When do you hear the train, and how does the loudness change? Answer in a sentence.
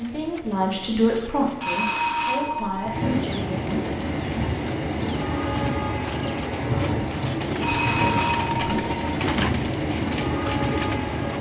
The train can be heard from 0.0 to 11.3 s, getting louder.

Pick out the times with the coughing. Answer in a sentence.
The coughing can't be heard in this clip.